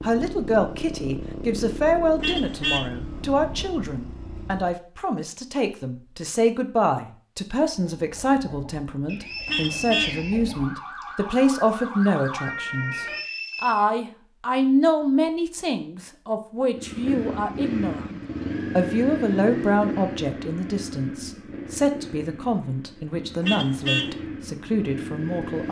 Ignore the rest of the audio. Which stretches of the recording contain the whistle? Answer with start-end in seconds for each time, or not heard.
9.1-11.1, 12.9-13.8.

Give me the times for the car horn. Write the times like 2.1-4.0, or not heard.
2.2-2.9, 9.4-10.2, 23.4-24.1.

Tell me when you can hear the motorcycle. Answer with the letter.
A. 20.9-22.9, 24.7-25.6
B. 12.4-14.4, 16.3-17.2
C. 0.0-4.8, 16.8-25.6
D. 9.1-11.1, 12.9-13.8
C.